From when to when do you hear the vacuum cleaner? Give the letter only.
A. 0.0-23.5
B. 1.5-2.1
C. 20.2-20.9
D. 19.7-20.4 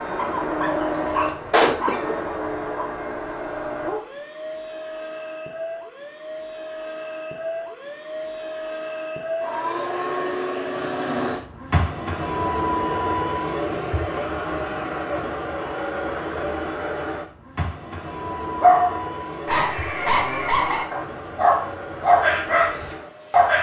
A.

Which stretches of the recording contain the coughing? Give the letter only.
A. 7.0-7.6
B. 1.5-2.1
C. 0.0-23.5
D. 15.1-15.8
B.